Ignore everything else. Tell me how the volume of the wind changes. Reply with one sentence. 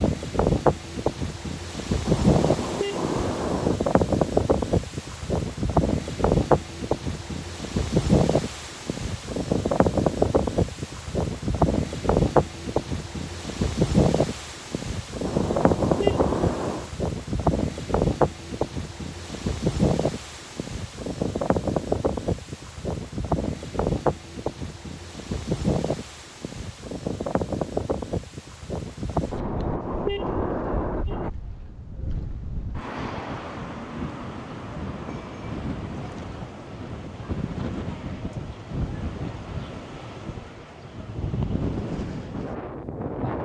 The volume of the wind goes down.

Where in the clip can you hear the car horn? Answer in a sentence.
The car horn can be heard from 2.0 to 3.8 s, from 15.2 to 16.9 s and from 29.3 to 31.3 s.